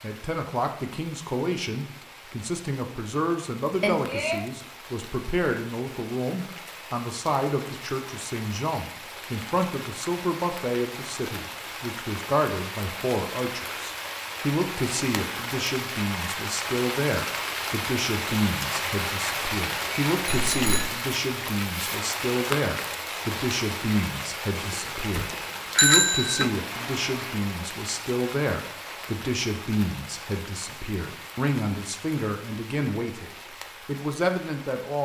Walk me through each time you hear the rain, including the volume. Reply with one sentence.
You can hear the rain from 0.0 to 35.0 s, getting louder then quieter.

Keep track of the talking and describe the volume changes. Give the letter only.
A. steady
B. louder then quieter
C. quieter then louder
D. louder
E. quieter
A.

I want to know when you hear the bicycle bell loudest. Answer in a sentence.
The loudest moment of the bicycle bell is at 26 seconds.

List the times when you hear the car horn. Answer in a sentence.
You can hear the car horn from 26.6 to 27.6 s.